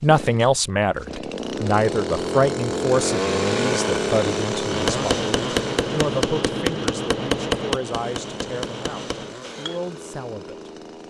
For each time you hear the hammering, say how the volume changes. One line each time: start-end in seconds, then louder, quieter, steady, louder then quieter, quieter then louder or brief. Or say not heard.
4.7-9.8 quieter.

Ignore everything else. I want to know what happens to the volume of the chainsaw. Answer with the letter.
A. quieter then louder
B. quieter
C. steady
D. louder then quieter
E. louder
D.